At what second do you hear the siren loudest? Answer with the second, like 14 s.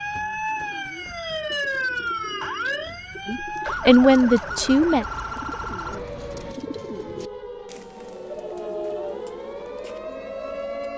2 s.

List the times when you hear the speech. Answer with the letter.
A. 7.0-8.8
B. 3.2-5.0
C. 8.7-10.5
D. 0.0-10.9
B.